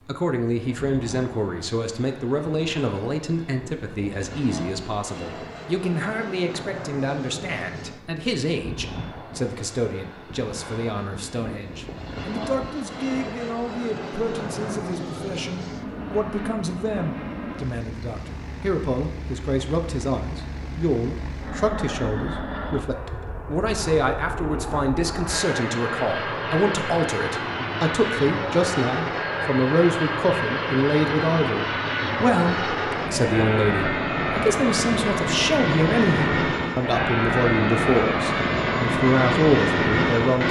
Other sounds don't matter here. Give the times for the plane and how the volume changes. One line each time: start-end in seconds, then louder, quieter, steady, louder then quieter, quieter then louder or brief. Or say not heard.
0.0-40.4 louder.